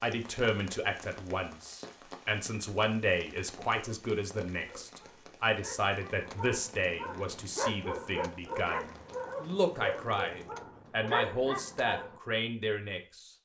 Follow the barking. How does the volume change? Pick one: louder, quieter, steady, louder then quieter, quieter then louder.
louder.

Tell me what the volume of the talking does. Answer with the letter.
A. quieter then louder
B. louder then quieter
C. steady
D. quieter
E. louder
C.